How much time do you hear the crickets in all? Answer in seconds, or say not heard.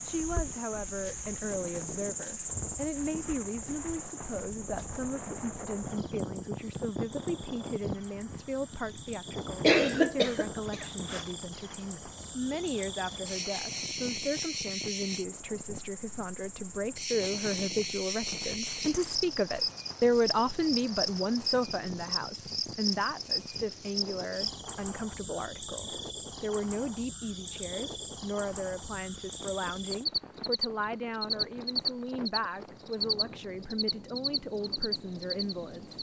36 s.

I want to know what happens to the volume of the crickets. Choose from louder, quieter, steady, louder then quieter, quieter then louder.
louder.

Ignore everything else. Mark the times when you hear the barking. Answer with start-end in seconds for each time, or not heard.
not heard.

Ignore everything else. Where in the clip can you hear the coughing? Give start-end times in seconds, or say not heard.
9.5-11.2.